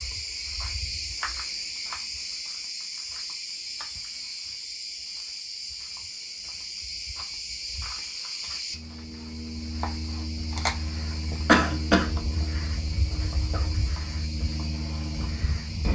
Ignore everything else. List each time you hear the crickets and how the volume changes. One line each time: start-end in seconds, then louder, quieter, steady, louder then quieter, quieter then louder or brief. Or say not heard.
0.0-15.9 steady.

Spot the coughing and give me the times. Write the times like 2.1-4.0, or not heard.
11.4-12.1.